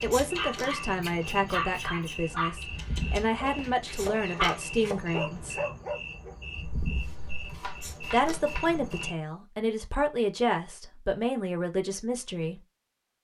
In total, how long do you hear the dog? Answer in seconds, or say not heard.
6 s.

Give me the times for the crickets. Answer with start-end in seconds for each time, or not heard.
0.0-9.2.